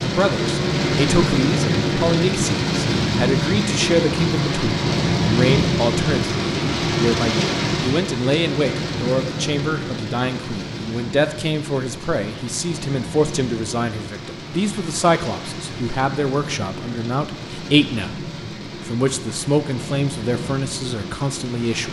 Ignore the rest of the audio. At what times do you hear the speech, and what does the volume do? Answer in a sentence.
The speech can be heard from 0.0 to 21.8 s, at a steady volume.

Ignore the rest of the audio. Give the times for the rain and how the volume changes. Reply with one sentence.
You can hear the rain from 0.0 to 21.8 s, getting quieter.